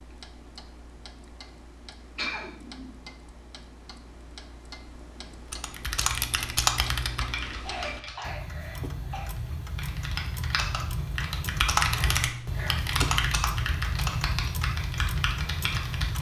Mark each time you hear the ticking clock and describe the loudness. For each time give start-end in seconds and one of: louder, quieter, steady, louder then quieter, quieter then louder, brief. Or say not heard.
0.0-16.1 louder.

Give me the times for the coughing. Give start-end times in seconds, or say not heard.
2.1-2.9, 7.6-9.3, 11.9-12.8.